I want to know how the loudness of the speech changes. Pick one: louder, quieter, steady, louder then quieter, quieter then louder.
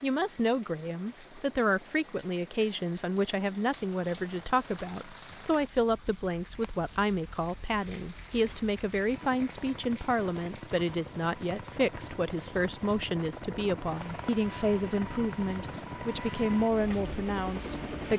steady.